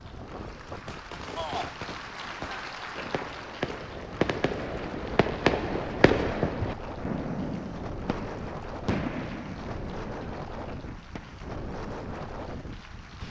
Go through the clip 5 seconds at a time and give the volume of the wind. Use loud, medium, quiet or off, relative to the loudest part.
medium, loud, loud.